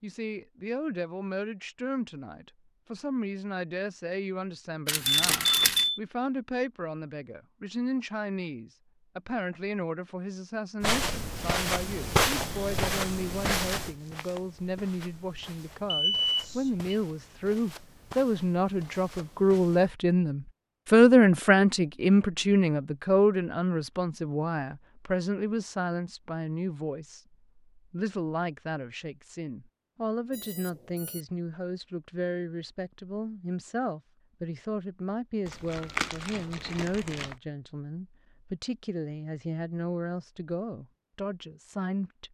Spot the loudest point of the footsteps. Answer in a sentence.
The volume of the footsteps peaks at 12 seconds.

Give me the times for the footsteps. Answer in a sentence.
You can hear the footsteps from 10.8 to 19.9 s.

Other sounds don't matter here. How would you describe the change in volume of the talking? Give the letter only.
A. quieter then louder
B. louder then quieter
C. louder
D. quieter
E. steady
B.